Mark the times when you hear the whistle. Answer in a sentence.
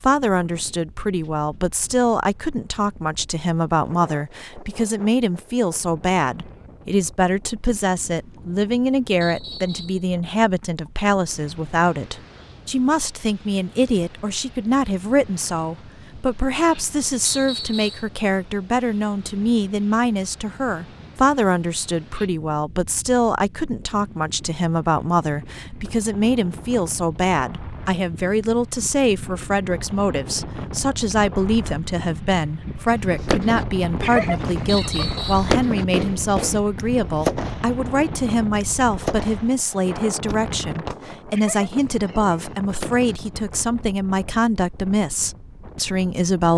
The whistle can be heard from 9.2 to 10.1 s, from 17.2 to 18.1 s and from 34.6 to 35.5 s.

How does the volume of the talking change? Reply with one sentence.
The loudness of the talking stays about the same.